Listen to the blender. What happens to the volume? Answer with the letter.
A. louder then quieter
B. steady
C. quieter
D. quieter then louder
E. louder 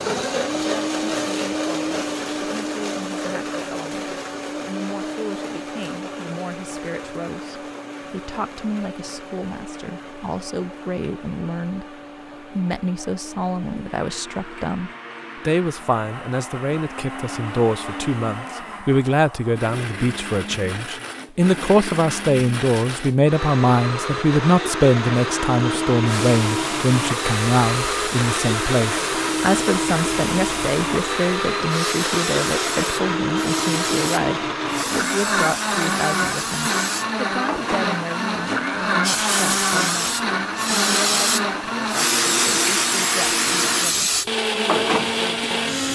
D.